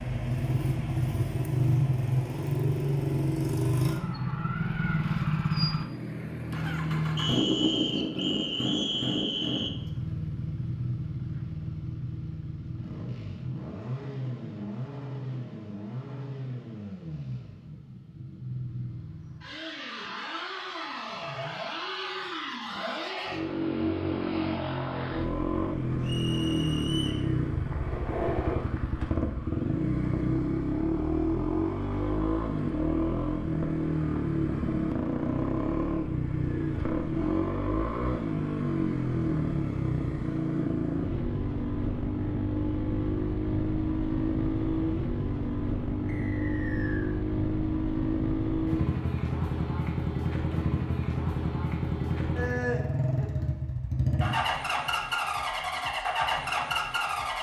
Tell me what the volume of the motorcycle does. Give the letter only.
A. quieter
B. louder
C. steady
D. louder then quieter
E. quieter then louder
E.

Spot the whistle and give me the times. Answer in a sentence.
The whistle can be heard from 7.2 to 9.7 s, from 26.0 to 27.2 s and from 46.0 to 47.1 s.